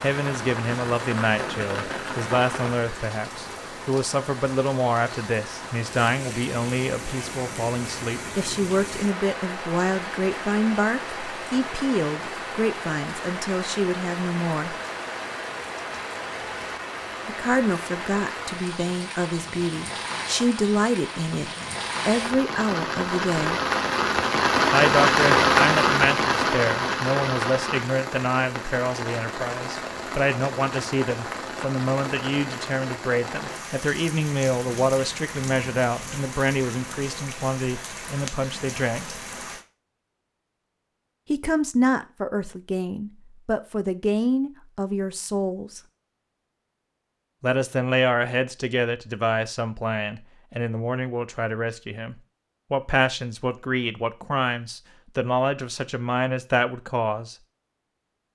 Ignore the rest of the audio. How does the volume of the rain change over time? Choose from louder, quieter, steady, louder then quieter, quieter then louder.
louder then quieter.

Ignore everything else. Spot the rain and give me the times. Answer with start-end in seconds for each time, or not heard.
0.0-39.6.